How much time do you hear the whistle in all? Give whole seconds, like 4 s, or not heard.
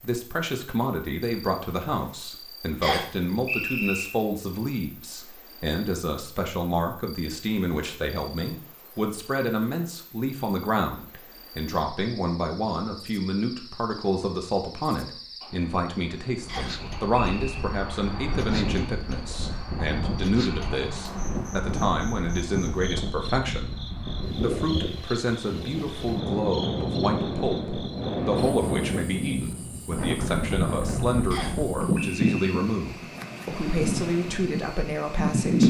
4 s.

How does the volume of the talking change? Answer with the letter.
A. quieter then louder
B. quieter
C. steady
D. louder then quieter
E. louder
C.